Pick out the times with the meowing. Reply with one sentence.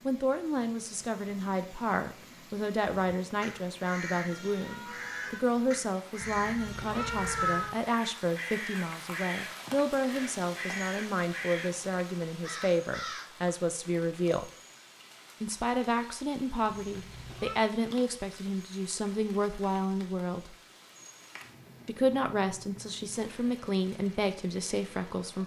The meowing can be heard from 6.2 to 7.8 s and from 16.6 to 17.6 s.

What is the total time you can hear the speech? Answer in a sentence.
You can hear the speech for 23 seconds altogether.